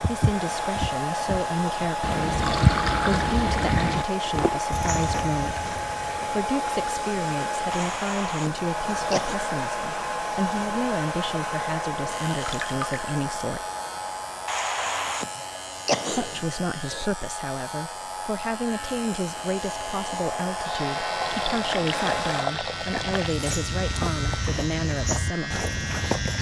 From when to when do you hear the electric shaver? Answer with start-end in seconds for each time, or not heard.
12.1-26.3.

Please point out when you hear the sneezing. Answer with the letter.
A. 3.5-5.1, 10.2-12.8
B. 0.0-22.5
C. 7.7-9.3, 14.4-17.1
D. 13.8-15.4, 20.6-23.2
C.